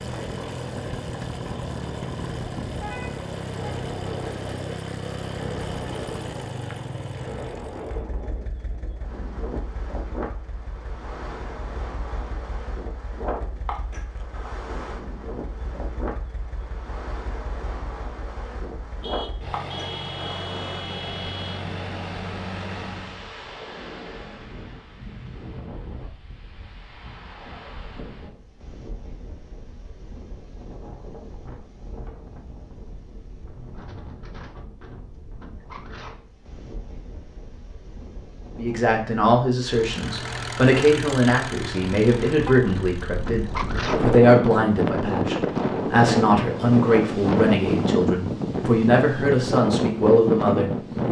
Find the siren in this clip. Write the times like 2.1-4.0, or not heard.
not heard.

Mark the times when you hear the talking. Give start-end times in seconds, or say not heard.
38.5-51.0.